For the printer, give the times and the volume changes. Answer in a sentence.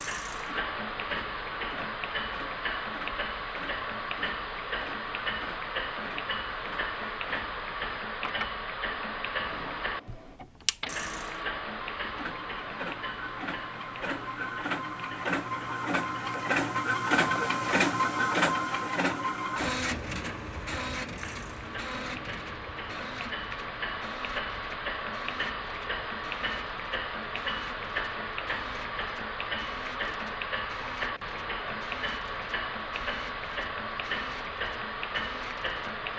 You can hear the printer from 0.0 to 36.1 s, getting louder then quieter.